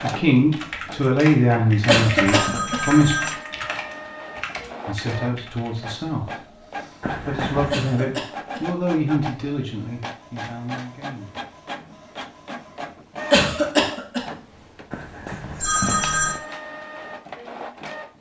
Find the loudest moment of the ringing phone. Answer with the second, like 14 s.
16 s.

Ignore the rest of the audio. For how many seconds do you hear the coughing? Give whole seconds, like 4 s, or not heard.
3 s.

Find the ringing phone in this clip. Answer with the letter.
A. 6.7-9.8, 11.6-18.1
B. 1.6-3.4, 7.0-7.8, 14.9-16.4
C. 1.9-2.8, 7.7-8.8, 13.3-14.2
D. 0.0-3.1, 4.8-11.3
B.